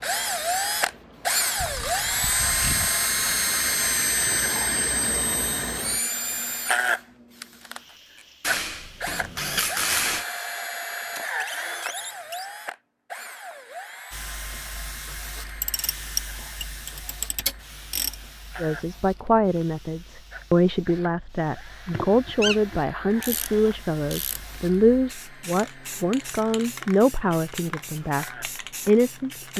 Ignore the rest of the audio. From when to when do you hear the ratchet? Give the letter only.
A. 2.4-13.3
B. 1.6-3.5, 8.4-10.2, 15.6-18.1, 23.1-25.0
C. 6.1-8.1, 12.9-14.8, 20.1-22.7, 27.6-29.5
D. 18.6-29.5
B.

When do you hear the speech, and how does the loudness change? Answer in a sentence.
The speech can be heard from 18.6 to 29.5 s, at a steady volume.